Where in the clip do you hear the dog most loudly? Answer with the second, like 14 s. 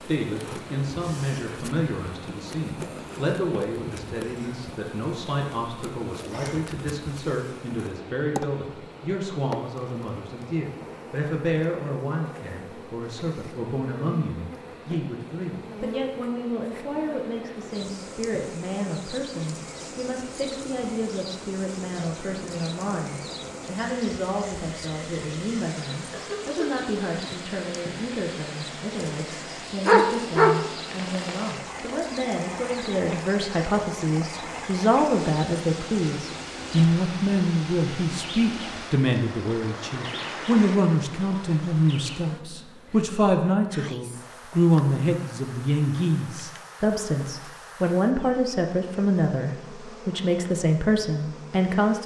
30 s.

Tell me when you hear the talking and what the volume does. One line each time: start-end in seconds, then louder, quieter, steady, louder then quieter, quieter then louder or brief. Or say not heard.
0.0-52.0 louder.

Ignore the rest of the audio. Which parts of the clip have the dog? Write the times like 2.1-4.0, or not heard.
29.9-31.5.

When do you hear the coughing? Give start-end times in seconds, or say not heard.
26.1-26.7.